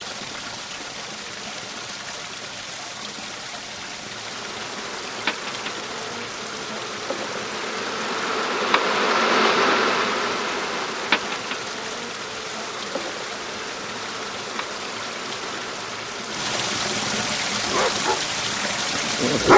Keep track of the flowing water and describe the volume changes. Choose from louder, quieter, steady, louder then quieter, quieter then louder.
louder.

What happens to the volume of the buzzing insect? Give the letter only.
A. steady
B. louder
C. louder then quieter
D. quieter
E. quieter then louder
C.